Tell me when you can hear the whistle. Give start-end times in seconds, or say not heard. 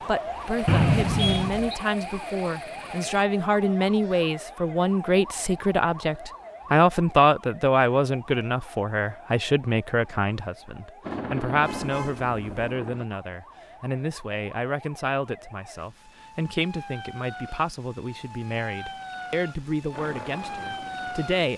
0.7-1.8.